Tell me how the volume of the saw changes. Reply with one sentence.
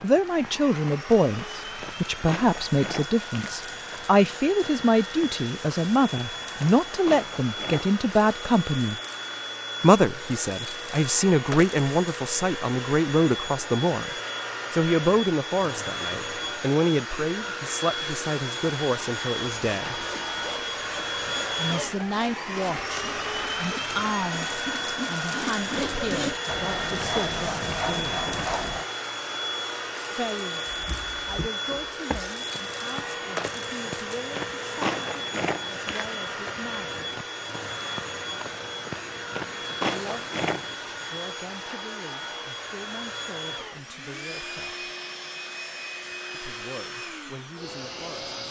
The volume of the saw goes up.